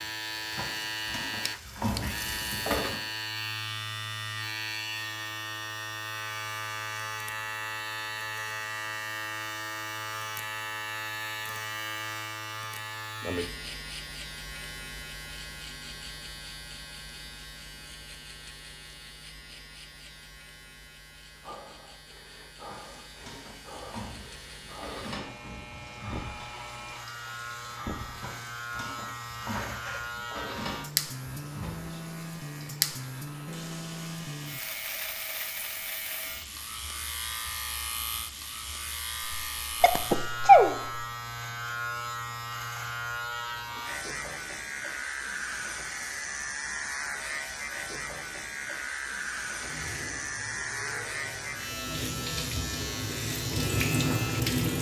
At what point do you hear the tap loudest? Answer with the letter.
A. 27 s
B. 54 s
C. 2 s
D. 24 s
B.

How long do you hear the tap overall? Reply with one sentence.
You can hear the tap for 26 seconds altogether.